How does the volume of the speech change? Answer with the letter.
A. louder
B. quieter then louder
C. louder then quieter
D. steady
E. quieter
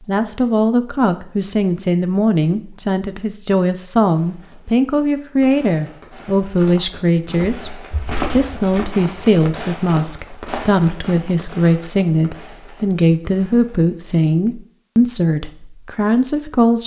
D.